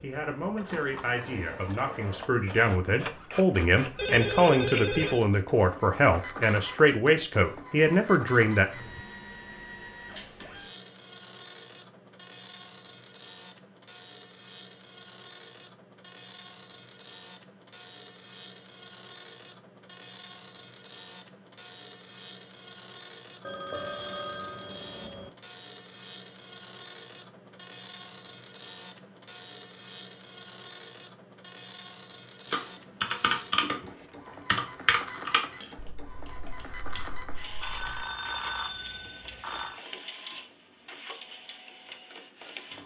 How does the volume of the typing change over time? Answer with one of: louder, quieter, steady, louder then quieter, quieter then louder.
quieter.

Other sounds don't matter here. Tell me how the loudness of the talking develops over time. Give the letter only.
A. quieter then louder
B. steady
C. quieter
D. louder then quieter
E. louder
E.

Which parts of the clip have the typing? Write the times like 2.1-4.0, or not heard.
32.5-38.0.